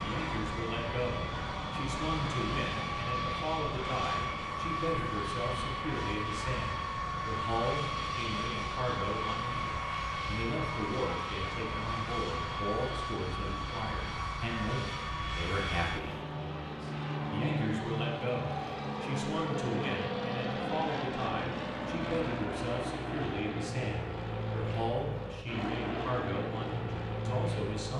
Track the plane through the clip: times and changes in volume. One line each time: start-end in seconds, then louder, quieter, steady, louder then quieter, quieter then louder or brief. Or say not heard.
0.0-27.9 steady.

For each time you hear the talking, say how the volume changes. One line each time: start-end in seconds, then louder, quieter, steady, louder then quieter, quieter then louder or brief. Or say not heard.
0.0-27.9 steady.